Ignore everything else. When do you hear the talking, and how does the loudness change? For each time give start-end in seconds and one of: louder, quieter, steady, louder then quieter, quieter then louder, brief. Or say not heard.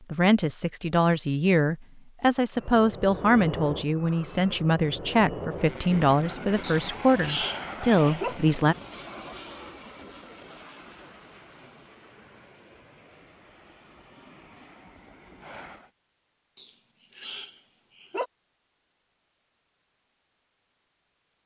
0.1-8.8 steady.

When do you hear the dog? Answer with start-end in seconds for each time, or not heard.
6.6-8.3, 16.6-18.2.